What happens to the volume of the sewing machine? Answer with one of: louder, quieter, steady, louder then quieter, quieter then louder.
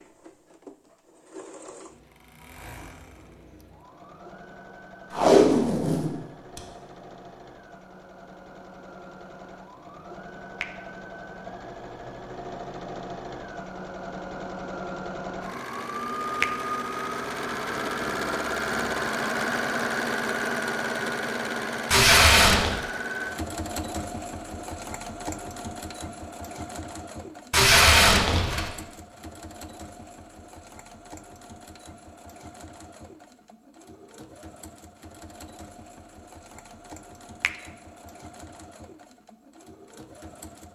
louder then quieter.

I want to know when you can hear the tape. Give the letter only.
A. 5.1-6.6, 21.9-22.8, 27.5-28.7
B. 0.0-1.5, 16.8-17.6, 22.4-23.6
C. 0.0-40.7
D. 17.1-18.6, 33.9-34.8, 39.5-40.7
A.